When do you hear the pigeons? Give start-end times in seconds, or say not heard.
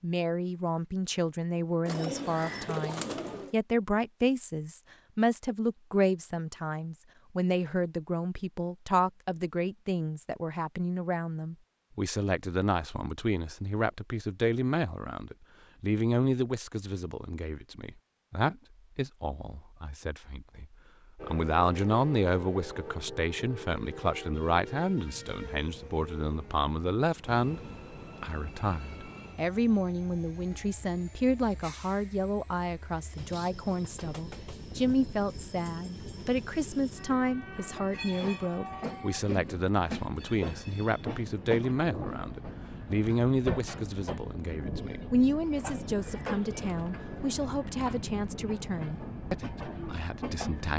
1.9-3.5, 45.5-47.4.